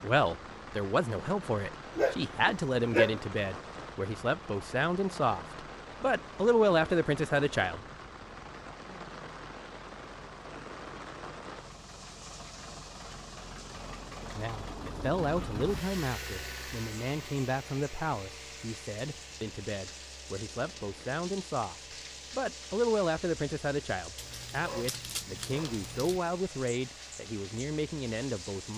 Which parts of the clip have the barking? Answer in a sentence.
The barking can be heard from 1.9 to 3.2 s and from 24.1 to 26.2 s.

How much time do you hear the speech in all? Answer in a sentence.
The speech can be heard for 22 seconds in total.